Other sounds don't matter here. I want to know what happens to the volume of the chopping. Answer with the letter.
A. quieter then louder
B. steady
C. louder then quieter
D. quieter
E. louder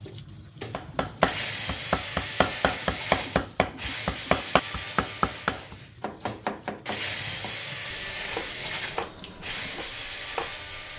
D.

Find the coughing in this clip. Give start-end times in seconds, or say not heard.
not heard.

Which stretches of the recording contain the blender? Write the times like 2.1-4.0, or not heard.
0.0-10.9.